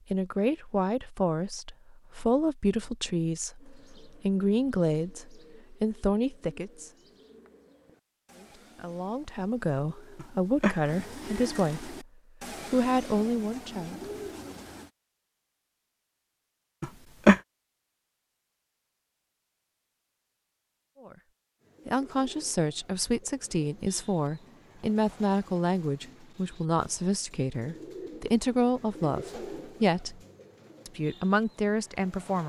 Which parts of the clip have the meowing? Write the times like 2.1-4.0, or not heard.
10.2-11.6, 16.8-17.4.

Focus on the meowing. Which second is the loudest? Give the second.
17 s.